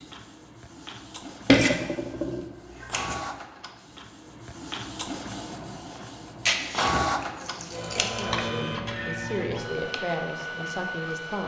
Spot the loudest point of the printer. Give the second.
7 s.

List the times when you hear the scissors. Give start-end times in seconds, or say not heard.
1.4-3.2, 6.5-8.2.